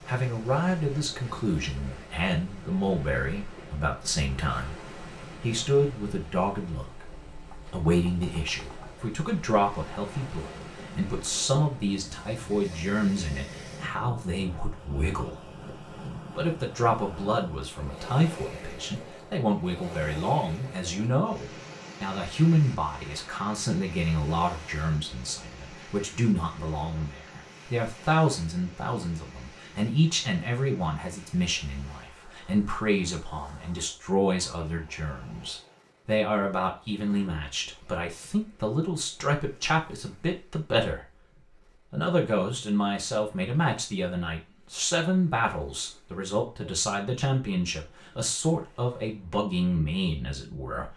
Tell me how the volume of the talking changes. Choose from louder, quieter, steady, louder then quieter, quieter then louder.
steady.